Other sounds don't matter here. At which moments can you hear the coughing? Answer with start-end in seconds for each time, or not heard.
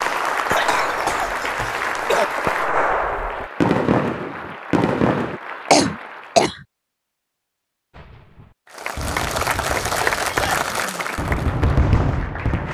0.5-2.2, 5.7-6.5, 9.8-10.7.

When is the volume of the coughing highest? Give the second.
6 s.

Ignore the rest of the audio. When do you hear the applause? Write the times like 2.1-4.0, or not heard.
0.0-6.5, 8.7-12.6.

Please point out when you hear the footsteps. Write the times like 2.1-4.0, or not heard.
not heard.